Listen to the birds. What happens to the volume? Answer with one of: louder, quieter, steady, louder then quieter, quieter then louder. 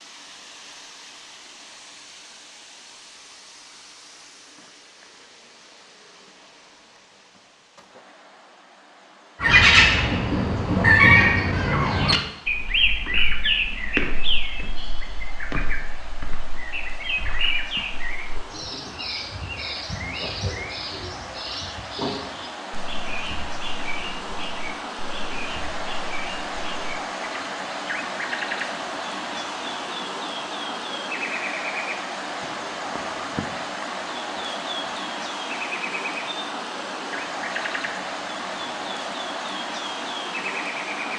quieter.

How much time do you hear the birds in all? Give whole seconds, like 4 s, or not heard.
32 s.